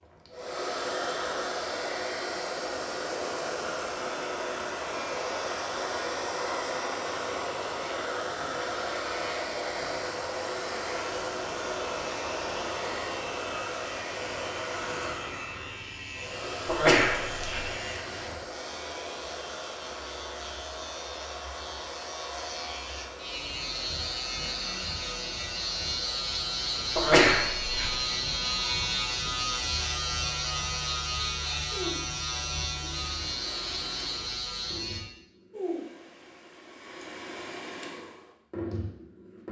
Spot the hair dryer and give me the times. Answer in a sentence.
You can hear the hair dryer from 0.0 to 39.4 s.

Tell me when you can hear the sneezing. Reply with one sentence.
You can hear the sneezing from 16.6 to 17.6 s and from 26.9 to 27.9 s.